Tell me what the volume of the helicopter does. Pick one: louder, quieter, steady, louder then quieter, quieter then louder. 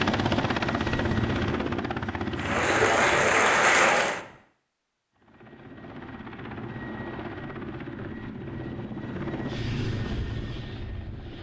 quieter then louder.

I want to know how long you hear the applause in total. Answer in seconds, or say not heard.
2 s.